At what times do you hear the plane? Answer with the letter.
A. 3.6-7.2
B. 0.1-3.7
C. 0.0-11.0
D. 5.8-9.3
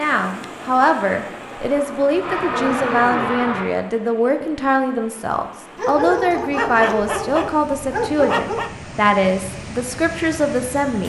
B.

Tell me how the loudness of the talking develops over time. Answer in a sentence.
The volume of the talking stays about the same.